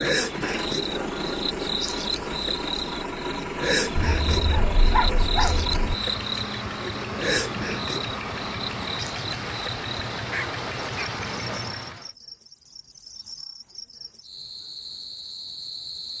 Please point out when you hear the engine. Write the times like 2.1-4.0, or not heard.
0.0-12.1.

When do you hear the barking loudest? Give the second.
5 s.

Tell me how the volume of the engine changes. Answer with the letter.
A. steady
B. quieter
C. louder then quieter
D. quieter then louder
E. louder
A.